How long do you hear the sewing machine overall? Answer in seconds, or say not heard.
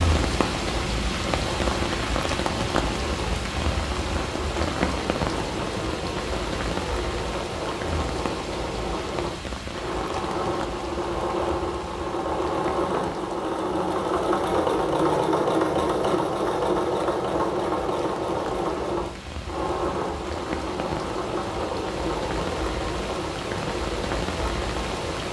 25 s.